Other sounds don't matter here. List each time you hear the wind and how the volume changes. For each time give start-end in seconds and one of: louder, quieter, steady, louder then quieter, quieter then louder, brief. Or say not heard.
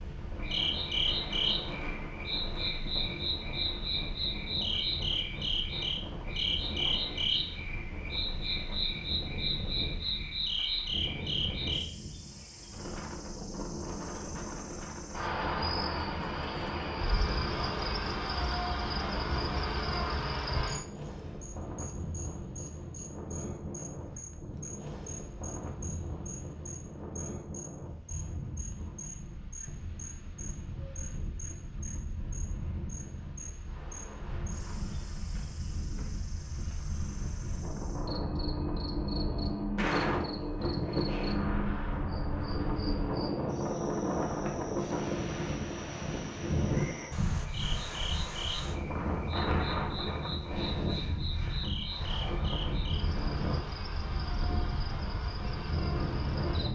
0.0-56.7 louder.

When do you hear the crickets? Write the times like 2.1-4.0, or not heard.
0.0-56.7.